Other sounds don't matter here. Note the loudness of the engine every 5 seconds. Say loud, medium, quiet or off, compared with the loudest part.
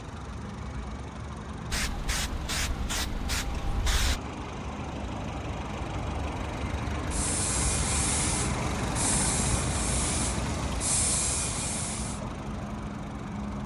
medium, loud, loud.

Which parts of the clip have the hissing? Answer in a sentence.
The hissing can be heard from 1.7 to 4.2 s and from 7.0 to 12.2 s.